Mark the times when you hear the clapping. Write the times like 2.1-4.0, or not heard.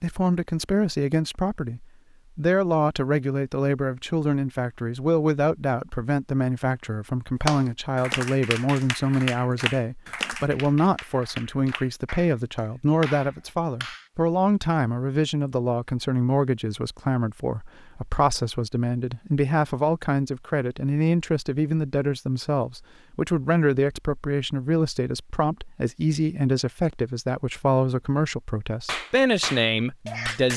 7.5-14.1, 28.9-30.5.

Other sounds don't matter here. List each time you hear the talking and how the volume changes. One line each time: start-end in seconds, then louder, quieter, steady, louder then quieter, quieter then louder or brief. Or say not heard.
0.0-30.5 steady.